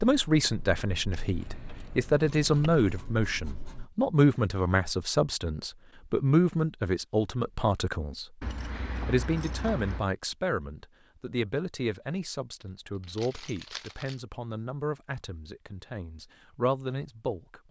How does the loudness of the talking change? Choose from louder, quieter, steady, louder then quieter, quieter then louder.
quieter.